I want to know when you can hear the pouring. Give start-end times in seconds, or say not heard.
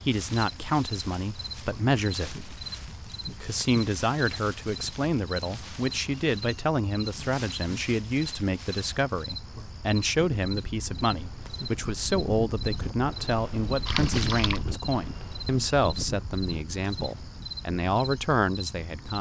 13.8-14.6.